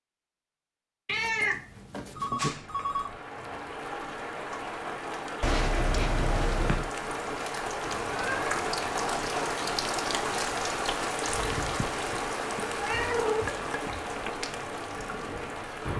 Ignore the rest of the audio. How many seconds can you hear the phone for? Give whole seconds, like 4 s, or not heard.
3 s.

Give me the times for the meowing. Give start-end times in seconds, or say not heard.
1.1-2.5, 7.8-8.6, 12.8-14.0.